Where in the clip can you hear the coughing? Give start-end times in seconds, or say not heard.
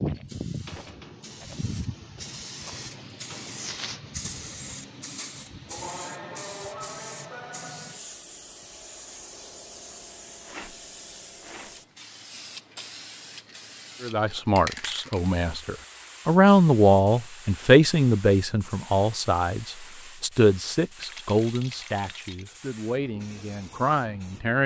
not heard.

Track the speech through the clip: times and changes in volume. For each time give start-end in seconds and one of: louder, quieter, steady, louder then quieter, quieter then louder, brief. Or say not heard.
14.0-24.6 louder then quieter.